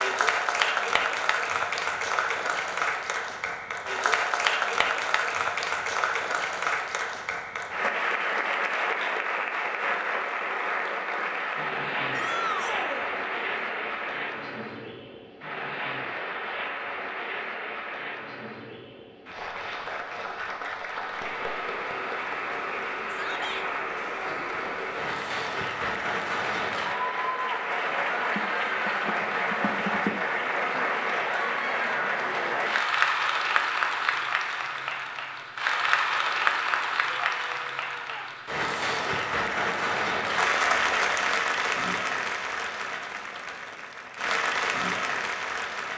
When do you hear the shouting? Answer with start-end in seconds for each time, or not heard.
12.1-13.1, 23.1-23.6, 37.1-38.3.